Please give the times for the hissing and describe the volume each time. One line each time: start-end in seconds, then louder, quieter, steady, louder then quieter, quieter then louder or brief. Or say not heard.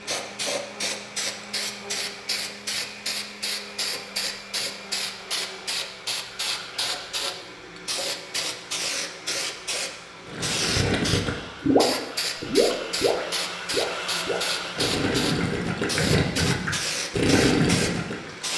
0.0-18.5 steady.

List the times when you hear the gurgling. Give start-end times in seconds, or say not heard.
10.2-18.3.